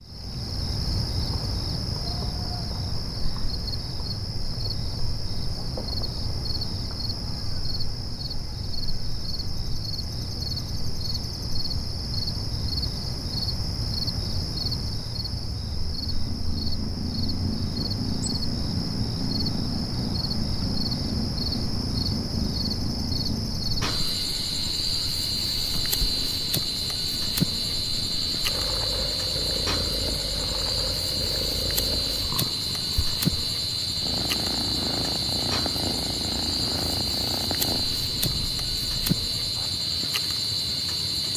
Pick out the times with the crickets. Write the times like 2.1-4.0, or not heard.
0.0-41.3.